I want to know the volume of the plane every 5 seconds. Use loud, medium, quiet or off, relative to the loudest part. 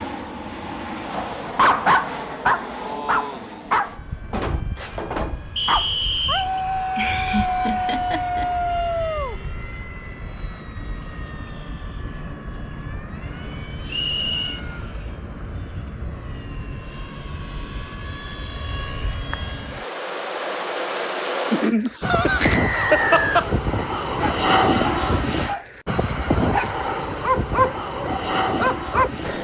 medium, quiet, quiet, medium, loud, loud.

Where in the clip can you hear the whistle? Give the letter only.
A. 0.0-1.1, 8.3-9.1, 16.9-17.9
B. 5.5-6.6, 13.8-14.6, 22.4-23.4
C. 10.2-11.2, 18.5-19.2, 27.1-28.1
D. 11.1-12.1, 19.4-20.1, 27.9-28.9
B.